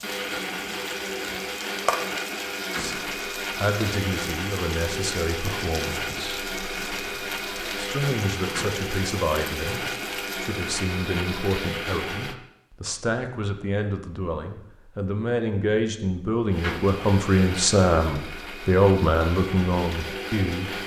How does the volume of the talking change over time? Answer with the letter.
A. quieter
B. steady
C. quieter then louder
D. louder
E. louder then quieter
D.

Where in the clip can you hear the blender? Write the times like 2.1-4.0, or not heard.
0.0-12.3, 16.5-20.8.